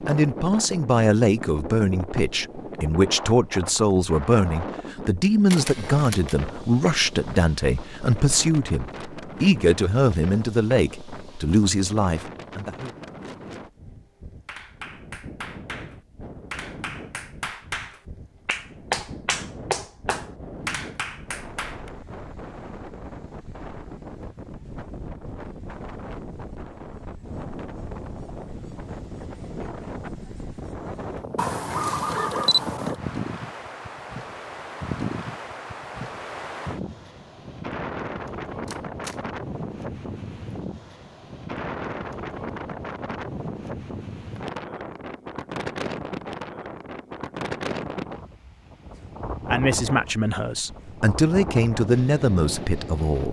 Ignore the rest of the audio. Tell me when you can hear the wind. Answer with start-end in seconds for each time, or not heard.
0.0-53.2.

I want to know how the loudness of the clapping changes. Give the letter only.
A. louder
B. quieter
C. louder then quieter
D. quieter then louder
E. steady
C.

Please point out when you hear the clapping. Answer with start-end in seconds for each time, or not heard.
14.4-21.9.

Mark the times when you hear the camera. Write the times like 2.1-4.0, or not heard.
5.5-6.3, 31.4-33.0, 38.6-39.1.